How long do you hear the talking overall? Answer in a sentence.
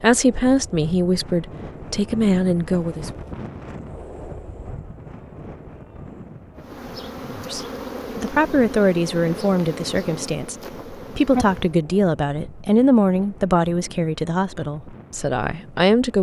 You can hear the talking for 12 seconds altogether.